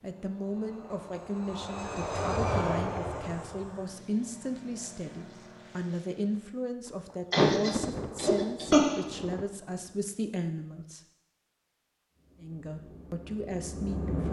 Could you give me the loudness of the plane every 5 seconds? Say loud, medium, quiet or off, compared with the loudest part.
loud, quiet, loud.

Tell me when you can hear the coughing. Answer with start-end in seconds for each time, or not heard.
7.3-9.0.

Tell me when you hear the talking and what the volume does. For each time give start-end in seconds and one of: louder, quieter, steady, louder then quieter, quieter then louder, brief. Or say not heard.
0.0-11.0 steady
12.4-14.2 brief.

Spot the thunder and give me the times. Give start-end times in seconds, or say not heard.
6.8-10.3.